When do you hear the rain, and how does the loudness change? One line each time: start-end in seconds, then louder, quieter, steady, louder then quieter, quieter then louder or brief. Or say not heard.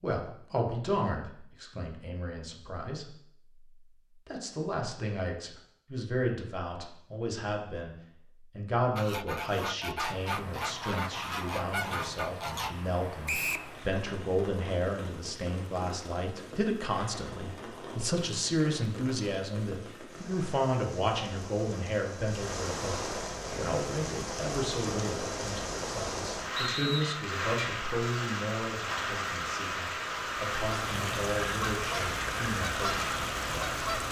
9.9-34.0 louder.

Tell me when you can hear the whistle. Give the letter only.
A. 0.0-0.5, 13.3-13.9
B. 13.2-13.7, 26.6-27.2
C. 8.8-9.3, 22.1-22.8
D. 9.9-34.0
B.